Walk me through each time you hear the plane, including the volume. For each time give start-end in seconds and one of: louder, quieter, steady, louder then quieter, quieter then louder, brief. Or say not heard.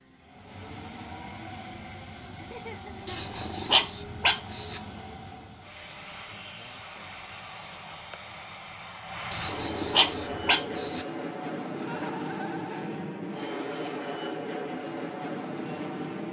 0.0-16.2 louder.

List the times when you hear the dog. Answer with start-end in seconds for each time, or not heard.
3.0-4.8, 9.3-11.1.